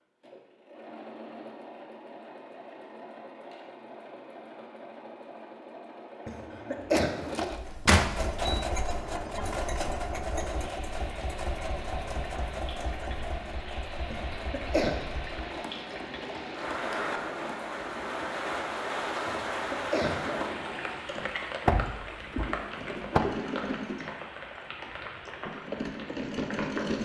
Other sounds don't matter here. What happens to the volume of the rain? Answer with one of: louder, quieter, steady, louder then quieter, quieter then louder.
louder then quieter.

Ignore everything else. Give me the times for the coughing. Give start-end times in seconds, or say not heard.
6.2-7.2, 14.1-15.0, 19.2-20.6.